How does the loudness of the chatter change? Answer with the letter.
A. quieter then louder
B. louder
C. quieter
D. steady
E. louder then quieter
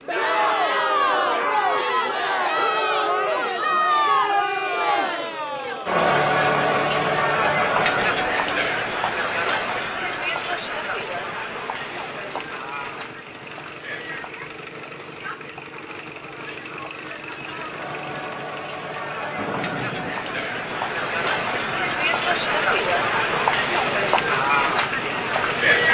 A.